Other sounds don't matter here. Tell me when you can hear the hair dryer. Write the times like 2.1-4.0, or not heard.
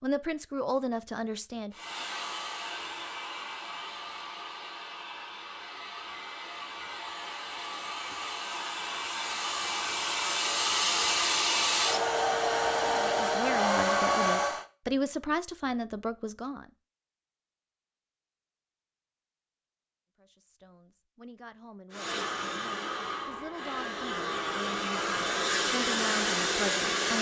1.7-14.7, 21.9-27.1.